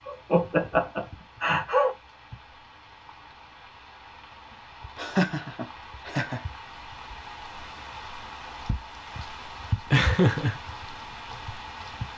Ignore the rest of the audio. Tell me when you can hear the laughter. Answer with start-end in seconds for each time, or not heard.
0.1-1.9, 5.0-6.4, 9.9-10.6.